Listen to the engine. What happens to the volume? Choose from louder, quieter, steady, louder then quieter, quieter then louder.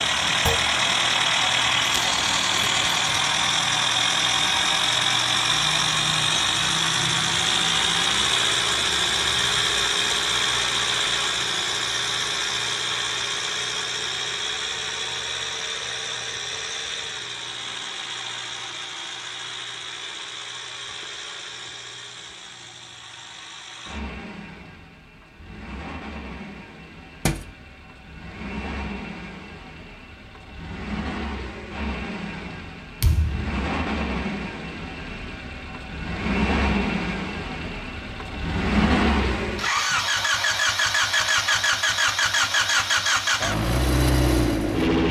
quieter then louder.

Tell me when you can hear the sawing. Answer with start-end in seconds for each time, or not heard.
not heard.